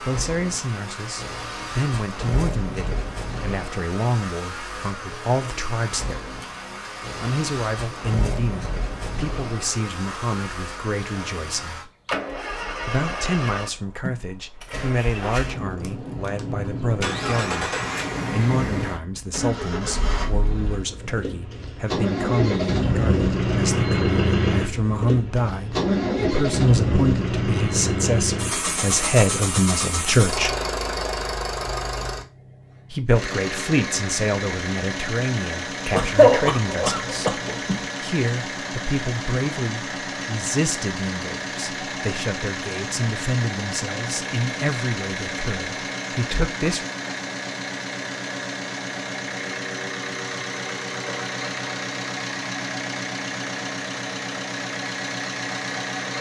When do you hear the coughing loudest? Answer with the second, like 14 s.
36 s.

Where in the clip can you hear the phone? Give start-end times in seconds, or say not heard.
not heard.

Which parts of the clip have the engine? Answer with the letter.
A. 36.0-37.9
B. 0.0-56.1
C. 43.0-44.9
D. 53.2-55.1
B.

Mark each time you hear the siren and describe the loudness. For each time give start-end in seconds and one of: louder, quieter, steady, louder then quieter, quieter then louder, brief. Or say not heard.
not heard.